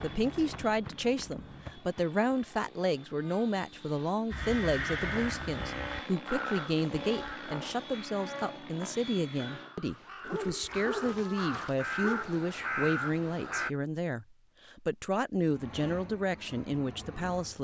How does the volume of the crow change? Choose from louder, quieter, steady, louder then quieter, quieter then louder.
quieter then louder.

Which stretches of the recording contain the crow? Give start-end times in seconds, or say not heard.
4.3-13.7.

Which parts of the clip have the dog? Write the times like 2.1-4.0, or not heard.
10.2-12.4.